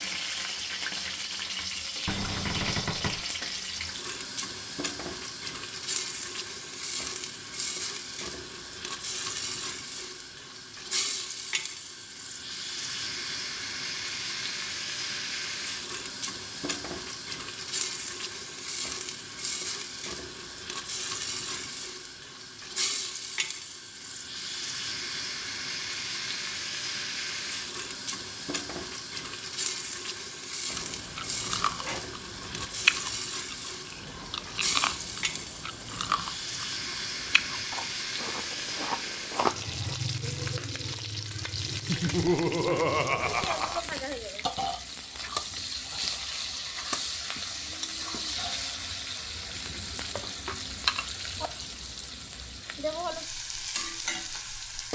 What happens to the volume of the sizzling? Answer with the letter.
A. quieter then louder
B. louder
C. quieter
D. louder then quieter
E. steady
E.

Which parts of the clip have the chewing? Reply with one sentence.
You can hear the chewing from 30.8 to 40.0 s.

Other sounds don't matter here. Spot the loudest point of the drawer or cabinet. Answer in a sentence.
The volume of the drawer or cabinet peaks at 3 seconds.